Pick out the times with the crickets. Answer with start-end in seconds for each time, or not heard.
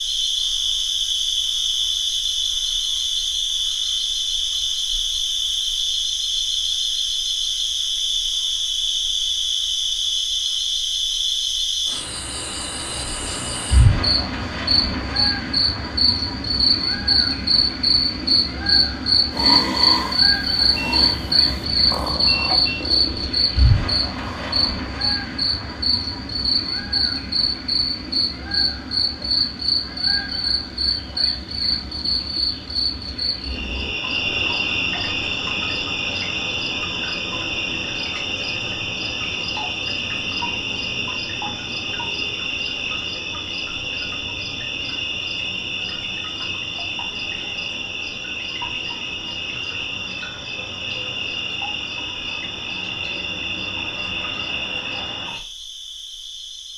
0.0-56.7.